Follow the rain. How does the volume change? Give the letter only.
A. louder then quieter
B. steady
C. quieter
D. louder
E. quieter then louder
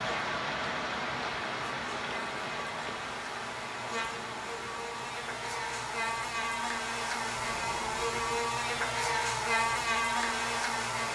C.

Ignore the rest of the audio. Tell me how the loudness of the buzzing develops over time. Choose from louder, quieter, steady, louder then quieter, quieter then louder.
louder.